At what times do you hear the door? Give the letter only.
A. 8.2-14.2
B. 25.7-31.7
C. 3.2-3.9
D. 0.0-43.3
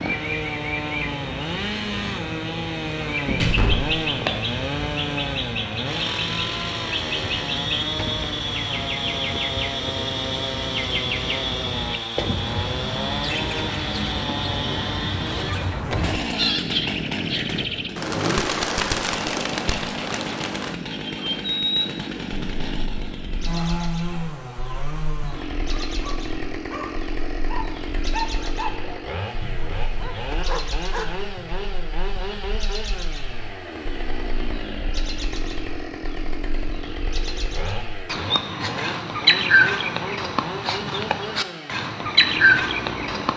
C.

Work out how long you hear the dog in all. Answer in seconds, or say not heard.
6 s.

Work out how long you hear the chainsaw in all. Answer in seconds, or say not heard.
43 s.